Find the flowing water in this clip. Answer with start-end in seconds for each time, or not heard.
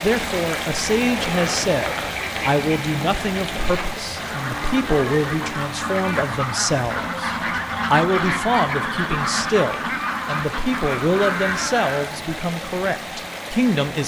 0.0-14.0.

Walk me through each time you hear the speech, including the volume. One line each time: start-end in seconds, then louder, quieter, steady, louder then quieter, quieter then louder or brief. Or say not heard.
0.0-14.0 steady.